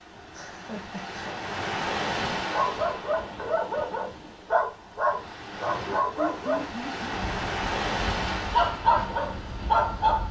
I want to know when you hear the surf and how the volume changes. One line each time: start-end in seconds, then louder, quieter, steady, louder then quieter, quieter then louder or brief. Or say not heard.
0.0-10.2 quieter then louder.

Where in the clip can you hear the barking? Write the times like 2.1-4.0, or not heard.
2.5-10.2.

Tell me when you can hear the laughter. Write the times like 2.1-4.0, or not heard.
0.3-1.4, 5.7-7.2.